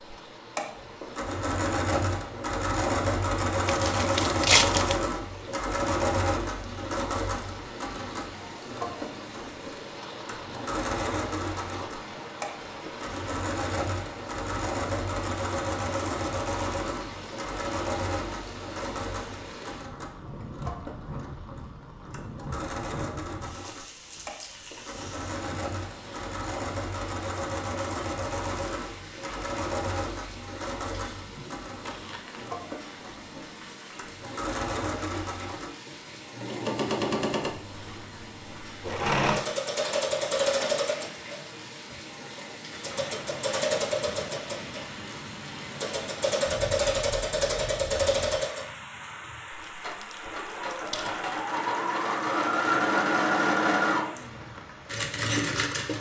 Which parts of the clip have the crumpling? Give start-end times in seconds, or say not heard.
3.6-5.0, 31.9-32.5, 49.5-51.3.